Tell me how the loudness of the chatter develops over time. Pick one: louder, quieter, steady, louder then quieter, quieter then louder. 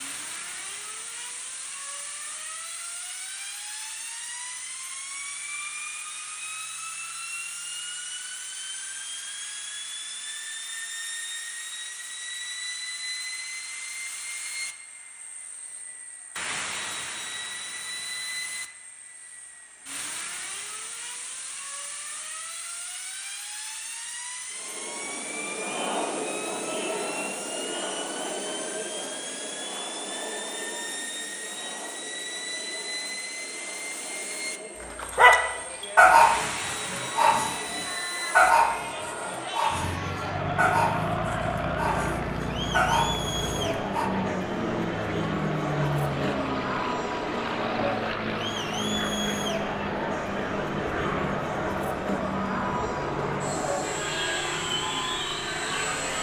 quieter then louder.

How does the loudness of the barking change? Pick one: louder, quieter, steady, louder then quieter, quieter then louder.
quieter.